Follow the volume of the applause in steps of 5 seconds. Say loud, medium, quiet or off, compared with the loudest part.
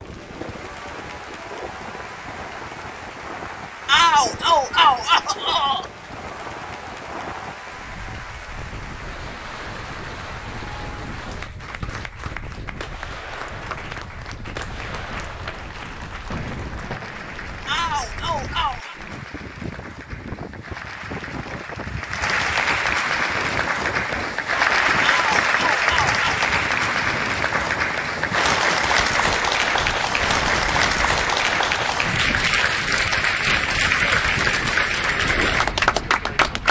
quiet, quiet, quiet, quiet, loud, loud, loud, loud.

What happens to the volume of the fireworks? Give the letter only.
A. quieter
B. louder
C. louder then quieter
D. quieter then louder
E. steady
E.